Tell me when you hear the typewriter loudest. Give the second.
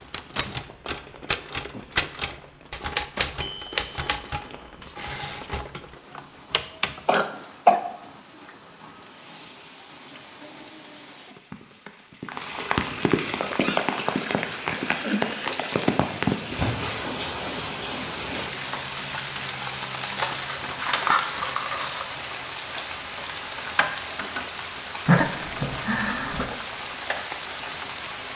2 s.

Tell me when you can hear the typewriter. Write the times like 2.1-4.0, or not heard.
0.1-7.2.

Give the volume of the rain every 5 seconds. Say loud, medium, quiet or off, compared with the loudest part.
quiet, quiet, loud, loud, loud, loud.